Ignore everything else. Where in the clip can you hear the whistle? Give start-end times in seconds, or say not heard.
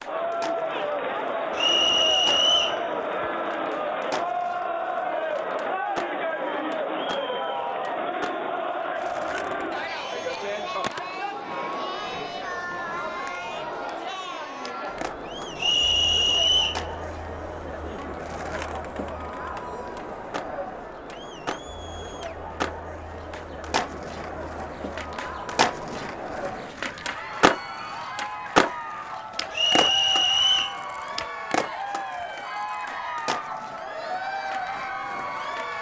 1.6-2.8, 15.6-16.8, 29.5-30.8.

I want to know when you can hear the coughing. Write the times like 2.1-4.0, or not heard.
not heard.